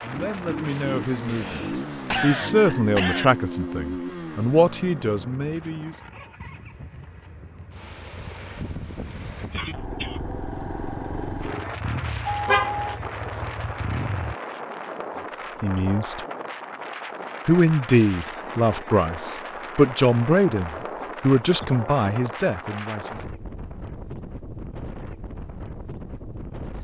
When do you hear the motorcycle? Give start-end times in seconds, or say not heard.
0.0-14.3.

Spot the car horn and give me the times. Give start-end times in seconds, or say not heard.
12.2-12.9.